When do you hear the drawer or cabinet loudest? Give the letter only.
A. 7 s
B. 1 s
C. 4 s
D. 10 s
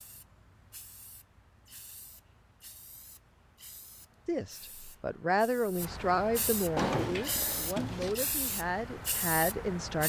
A.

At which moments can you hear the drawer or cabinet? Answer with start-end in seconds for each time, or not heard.
6.8-8.2.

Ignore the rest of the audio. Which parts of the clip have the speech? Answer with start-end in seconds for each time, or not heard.
4.2-10.0.